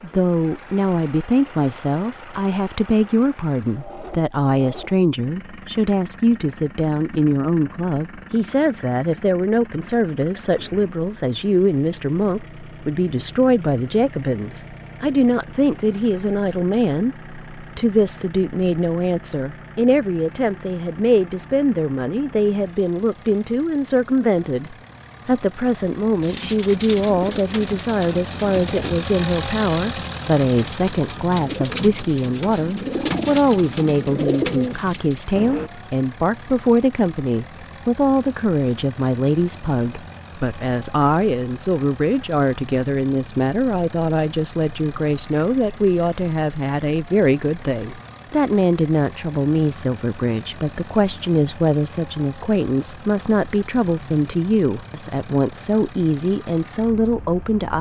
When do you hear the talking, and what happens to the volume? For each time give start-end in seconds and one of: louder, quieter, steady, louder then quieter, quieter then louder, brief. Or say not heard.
0.0-57.7 steady.